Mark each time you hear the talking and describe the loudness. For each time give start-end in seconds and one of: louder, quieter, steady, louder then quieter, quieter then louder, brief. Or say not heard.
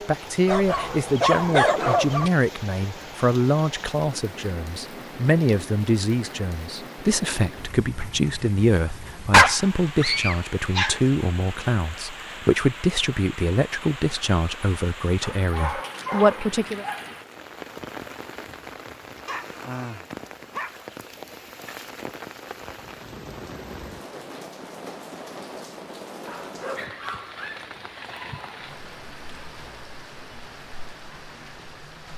0.1-16.9 steady.